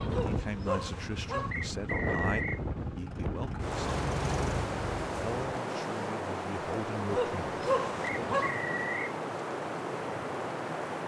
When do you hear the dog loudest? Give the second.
8 s.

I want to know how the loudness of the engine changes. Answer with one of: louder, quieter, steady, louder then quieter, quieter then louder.
louder.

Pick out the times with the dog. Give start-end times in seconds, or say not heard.
0.1-1.6, 7.1-8.6.